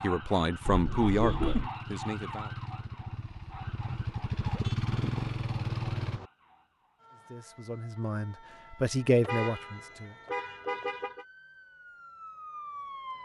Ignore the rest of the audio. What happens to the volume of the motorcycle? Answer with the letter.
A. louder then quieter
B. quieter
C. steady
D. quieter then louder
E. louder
E.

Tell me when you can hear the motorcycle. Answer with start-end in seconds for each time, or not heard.
0.0-6.2.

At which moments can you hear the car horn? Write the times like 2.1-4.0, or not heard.
0.7-1.7, 4.5-6.3, 9.2-11.2.